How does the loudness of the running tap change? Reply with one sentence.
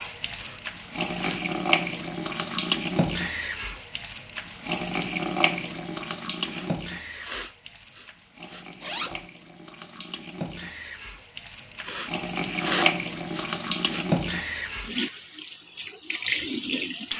The volume of the running tap goes down, then up.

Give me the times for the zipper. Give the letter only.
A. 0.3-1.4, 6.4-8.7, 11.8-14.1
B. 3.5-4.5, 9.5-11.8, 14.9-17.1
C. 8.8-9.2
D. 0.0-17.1
C.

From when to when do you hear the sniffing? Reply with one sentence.
You can hear the sniffing from 0.3 to 1.4 s, from 6.4 to 8.7 s and from 11.8 to 14.1 s.